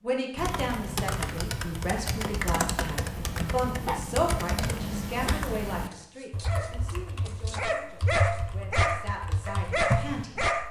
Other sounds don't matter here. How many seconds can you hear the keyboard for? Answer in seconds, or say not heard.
10 s.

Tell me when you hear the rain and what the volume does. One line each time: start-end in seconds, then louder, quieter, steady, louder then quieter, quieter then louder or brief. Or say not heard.
not heard.